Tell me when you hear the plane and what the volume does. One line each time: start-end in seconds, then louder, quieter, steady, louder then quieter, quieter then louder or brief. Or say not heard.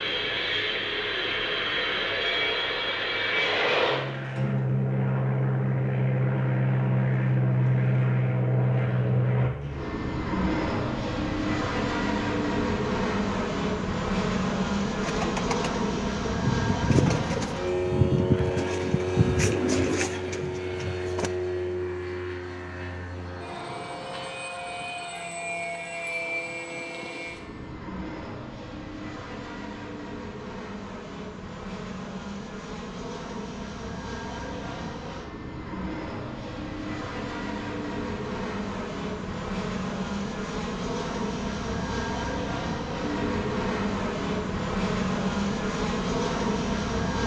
0.0-47.2 quieter then louder.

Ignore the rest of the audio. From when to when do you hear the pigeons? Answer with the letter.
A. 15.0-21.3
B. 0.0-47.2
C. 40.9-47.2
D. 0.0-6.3
A.